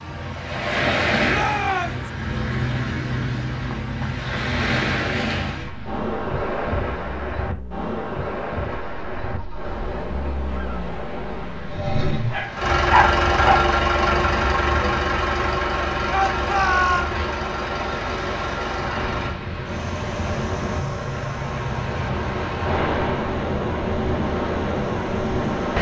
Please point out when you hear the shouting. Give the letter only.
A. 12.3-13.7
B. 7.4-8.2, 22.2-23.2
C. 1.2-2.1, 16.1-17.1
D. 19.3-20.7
C.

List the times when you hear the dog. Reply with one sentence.
You can hear the dog from 12.3 to 13.7 s.